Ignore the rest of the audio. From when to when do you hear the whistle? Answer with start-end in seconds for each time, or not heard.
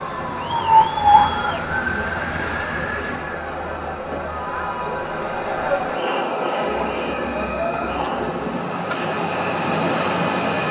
not heard.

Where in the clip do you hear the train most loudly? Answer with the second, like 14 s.
10 s.